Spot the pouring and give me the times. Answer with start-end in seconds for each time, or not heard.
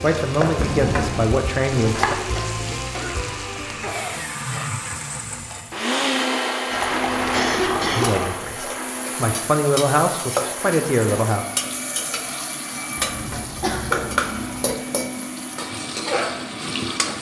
0.6-1.3, 6.7-8.4, 12.9-14.8.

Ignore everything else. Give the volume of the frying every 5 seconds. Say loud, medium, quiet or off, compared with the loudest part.
loud, medium, loud, loud.